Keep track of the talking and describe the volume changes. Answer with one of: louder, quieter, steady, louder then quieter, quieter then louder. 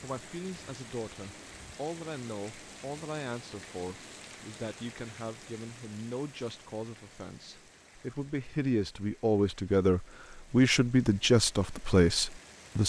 louder.